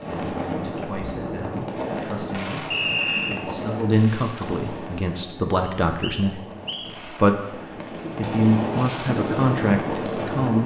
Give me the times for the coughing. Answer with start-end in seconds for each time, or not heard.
not heard.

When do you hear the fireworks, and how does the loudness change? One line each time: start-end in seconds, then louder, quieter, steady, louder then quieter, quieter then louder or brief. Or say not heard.
0.0-10.6 quieter then louder.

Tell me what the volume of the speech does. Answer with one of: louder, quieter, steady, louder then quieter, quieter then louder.
louder.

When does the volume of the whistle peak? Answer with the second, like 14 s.
3 s.